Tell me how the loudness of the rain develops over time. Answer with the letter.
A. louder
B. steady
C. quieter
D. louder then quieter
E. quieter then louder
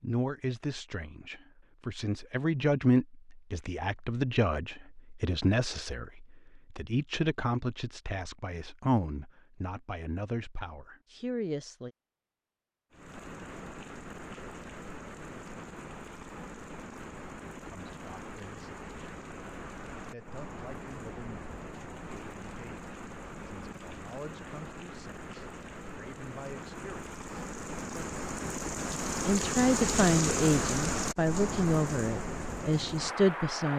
A.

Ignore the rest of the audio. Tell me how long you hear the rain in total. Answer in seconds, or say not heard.
21 s.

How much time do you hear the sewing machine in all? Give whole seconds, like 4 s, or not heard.
not heard.